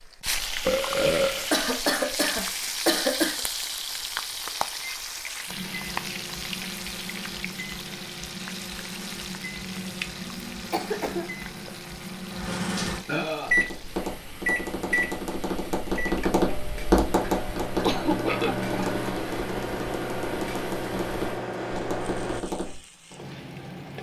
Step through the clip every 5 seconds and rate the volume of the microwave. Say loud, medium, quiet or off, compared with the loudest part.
off, medium, loud, loud, loud.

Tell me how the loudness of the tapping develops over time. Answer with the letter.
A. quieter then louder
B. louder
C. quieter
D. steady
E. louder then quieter
E.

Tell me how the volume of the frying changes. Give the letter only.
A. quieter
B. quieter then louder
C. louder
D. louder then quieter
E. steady
A.